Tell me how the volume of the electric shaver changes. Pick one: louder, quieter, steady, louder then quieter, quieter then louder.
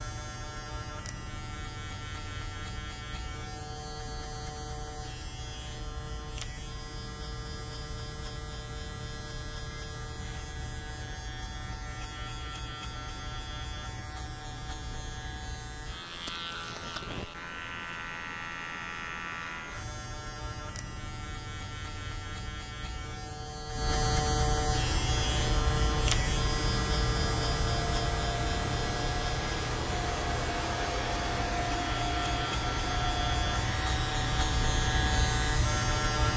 louder.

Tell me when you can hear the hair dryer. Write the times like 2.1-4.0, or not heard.
24.8-36.3.